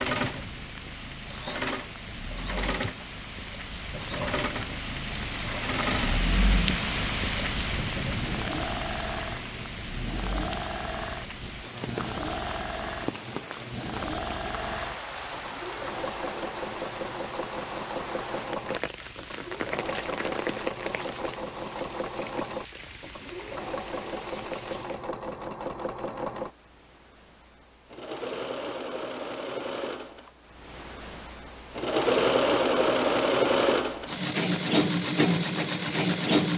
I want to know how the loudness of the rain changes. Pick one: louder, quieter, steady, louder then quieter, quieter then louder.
louder then quieter.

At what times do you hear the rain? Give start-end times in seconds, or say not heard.
0.0-25.1.